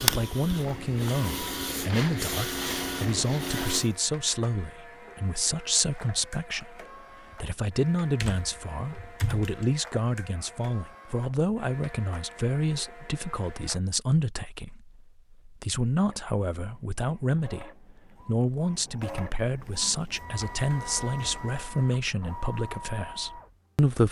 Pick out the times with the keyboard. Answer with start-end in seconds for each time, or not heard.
8.2-9.7.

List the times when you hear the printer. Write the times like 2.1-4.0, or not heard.
0.0-13.8, 16.1-23.8.